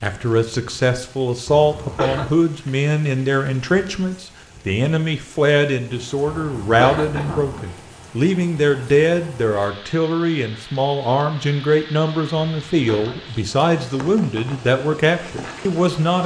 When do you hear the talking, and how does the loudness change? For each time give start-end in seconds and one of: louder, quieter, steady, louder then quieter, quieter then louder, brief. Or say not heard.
0.0-16.2 steady.